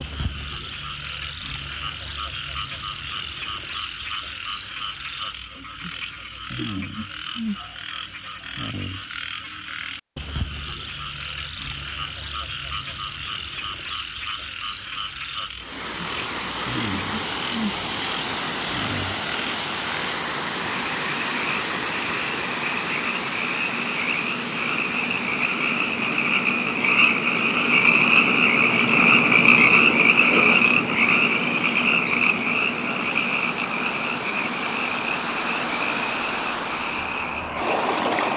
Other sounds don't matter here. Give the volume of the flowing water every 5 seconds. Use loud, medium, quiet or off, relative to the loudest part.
off, off, off, loud, loud, medium, medium, loud.